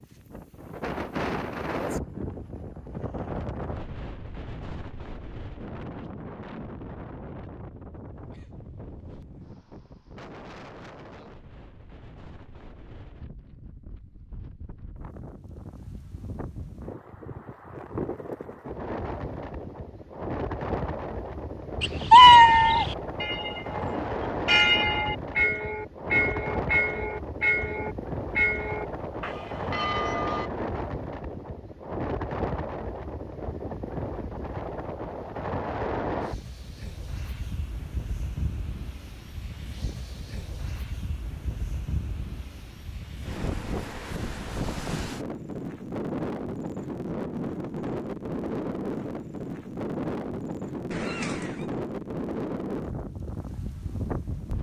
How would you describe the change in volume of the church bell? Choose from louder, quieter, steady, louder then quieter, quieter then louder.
louder then quieter.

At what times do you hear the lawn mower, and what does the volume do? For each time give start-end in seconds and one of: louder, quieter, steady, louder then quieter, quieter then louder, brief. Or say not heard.
not heard.